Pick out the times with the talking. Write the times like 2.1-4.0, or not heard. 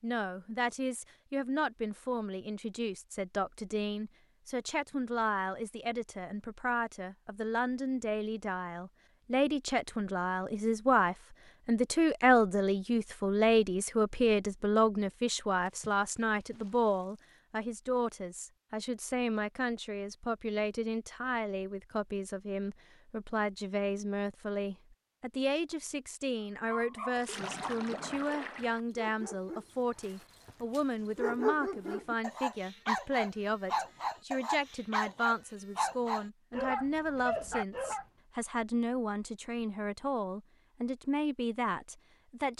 0.0-42.5.